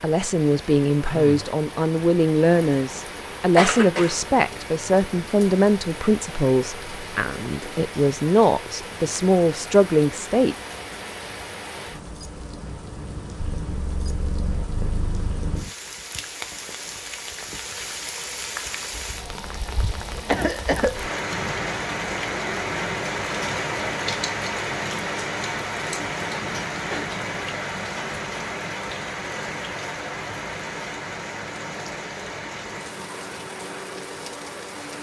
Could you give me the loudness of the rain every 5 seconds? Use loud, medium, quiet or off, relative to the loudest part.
medium, medium, medium, medium, loud, loud, medium.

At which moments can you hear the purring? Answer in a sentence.
You can hear the purring from 13.3 to 15.7 s.